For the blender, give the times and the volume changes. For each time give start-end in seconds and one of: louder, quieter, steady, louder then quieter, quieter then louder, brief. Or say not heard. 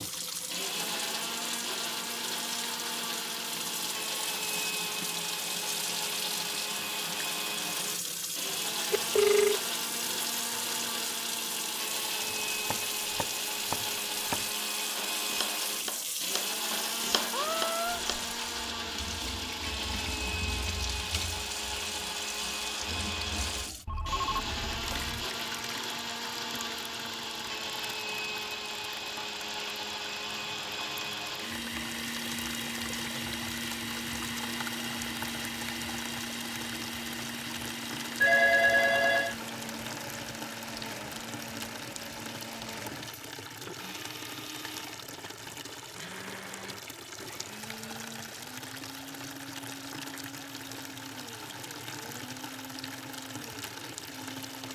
0.0-54.6 quieter.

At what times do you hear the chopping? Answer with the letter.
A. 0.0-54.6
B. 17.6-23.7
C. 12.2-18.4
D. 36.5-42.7
C.